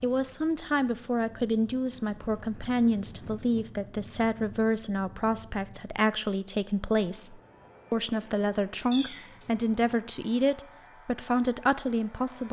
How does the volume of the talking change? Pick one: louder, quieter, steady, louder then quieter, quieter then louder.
steady.